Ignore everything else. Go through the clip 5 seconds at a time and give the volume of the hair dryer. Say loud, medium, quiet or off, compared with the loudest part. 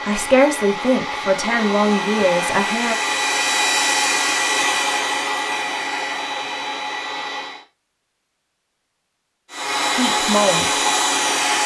loud, medium, loud.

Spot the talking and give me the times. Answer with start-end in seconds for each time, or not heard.
0.1-3.0, 9.9-10.7.